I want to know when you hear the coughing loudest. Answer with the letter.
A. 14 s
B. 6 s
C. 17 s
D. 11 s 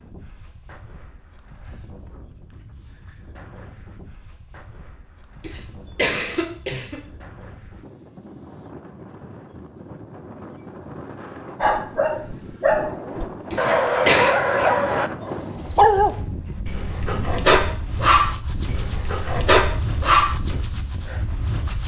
A.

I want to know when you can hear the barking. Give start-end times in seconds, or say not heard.
11.6-20.6.